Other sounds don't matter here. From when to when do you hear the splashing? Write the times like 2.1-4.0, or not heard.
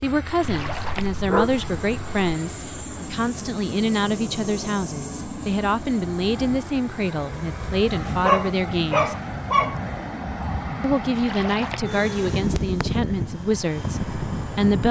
0.4-1.2, 11.2-11.9.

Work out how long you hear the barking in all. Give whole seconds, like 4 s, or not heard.
4 s.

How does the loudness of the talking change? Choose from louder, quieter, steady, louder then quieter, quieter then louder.
steady.